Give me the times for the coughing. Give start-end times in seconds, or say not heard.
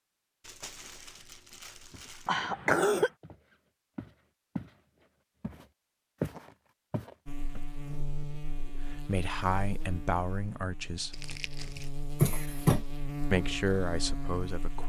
2.2-3.1, 12.2-12.8.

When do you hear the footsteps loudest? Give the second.
6 s.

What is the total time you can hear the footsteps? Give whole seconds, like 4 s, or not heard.
5 s.